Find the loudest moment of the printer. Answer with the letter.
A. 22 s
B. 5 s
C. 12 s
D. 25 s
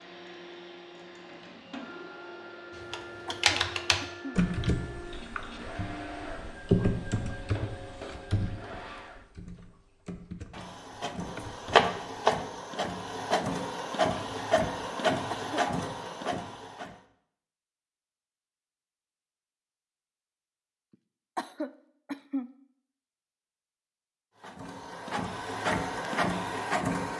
C.